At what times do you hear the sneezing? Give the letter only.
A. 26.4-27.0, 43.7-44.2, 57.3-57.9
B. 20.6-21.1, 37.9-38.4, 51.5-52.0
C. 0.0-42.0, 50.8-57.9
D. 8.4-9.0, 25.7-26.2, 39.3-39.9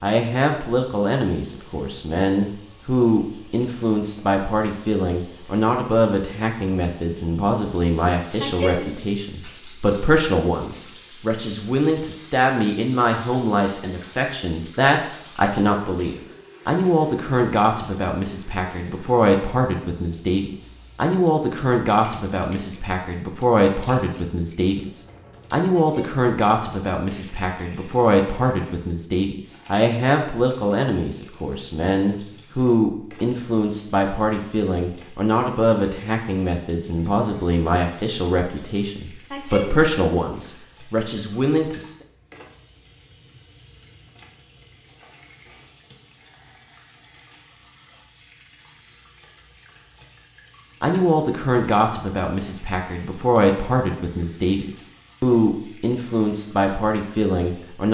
D.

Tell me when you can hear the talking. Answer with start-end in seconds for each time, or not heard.
0.0-42.0, 50.8-57.9.